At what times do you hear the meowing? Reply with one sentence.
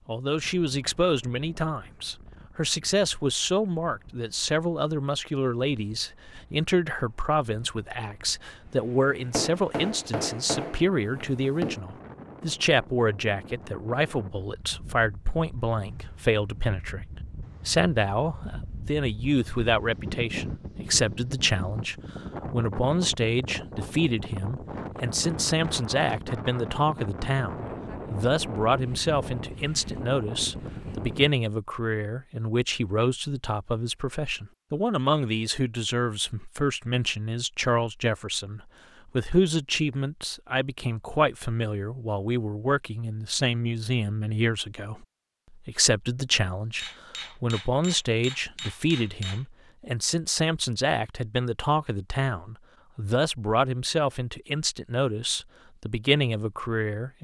You can't hear the meowing here.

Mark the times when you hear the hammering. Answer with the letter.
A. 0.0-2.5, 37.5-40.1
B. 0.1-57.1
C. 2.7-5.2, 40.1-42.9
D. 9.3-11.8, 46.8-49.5
D.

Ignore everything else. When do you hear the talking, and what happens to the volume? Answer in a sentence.
You can hear the talking from 0.1 to 57.1 s, at a steady volume.